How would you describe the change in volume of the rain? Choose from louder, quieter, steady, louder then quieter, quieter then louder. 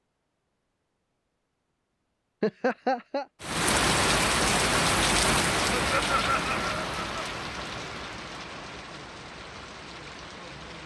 quieter.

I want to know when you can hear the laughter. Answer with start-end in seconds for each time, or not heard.
2.4-3.2, 5.8-7.2.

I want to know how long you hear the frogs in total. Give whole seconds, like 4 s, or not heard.
not heard.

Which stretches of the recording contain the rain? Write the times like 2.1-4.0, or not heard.
3.4-10.8.